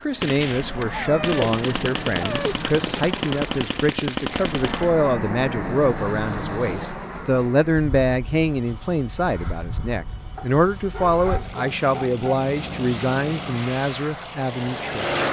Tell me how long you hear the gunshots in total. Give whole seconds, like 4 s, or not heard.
5 s.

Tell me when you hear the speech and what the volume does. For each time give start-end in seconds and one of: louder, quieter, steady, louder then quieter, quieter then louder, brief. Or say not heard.
0.0-15.2 steady.